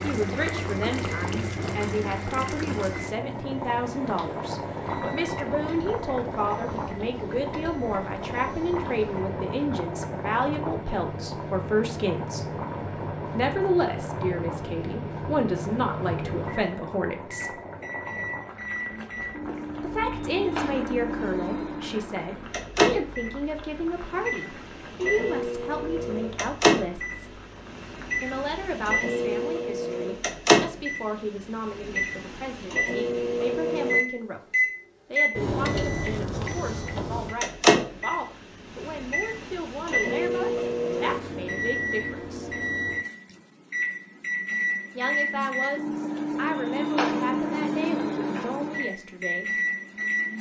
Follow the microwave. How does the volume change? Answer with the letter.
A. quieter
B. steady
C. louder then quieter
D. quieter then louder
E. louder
E.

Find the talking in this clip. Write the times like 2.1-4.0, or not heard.
0.0-12.5, 13.3-17.6, 19.8-27.4, 28.2-42.5, 45.0-49.5.